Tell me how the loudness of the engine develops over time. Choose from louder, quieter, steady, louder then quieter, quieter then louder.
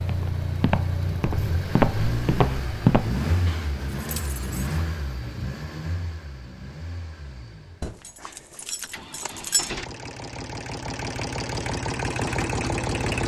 quieter then louder.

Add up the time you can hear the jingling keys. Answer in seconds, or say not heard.
3 s.